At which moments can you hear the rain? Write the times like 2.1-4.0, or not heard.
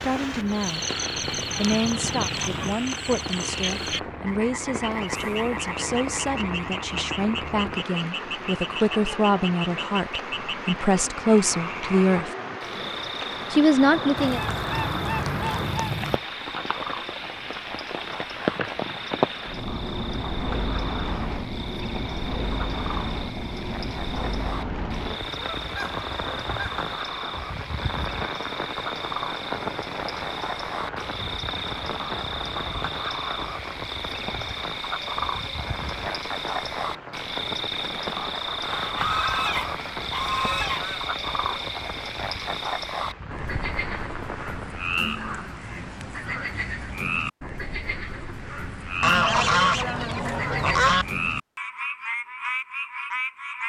0.0-44.9.